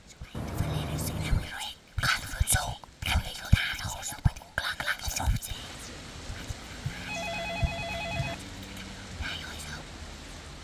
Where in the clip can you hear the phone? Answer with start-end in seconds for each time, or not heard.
0.3-1.6, 6.8-8.3.